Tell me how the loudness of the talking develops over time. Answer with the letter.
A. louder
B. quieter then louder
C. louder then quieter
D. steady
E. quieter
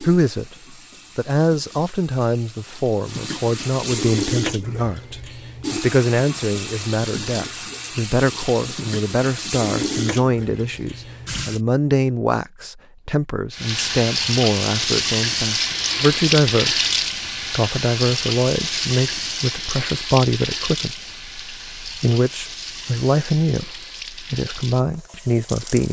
D.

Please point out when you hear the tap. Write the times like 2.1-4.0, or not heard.
0.0-11.6, 13.5-25.8.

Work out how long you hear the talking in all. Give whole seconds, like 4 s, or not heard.
25 s.